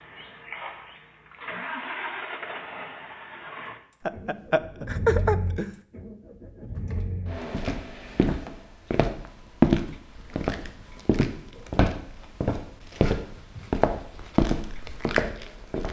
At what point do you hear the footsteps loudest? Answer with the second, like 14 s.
10 s.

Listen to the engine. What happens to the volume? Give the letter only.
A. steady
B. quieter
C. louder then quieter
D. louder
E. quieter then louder
A.